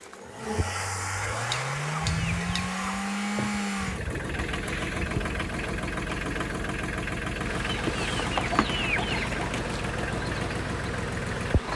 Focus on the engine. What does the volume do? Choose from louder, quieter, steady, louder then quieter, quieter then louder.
steady.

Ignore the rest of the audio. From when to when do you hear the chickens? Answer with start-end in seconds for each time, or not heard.
1.5-3.0, 7.7-9.7.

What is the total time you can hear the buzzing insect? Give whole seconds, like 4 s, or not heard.
12 s.